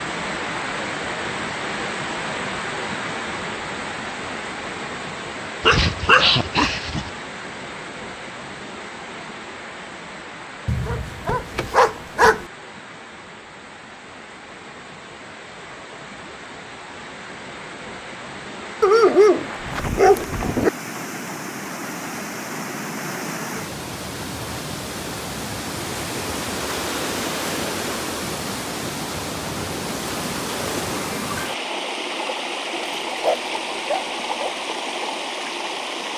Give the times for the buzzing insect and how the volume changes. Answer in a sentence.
You can't hear the buzzing insect here.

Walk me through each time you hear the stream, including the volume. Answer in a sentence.
The stream can be heard from 0.0 to 36.1 s, getting quieter then louder.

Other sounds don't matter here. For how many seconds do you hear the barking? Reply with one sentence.
You can hear the barking for 7 seconds altogether.